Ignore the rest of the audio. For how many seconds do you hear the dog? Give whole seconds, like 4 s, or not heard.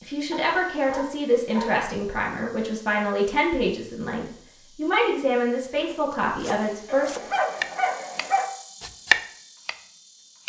3 s.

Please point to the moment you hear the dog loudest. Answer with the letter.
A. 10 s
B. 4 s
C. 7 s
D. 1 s
C.